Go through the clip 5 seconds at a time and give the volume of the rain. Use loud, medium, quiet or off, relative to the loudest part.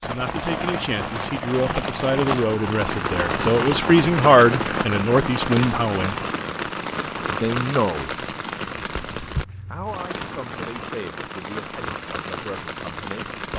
loud, loud, medium.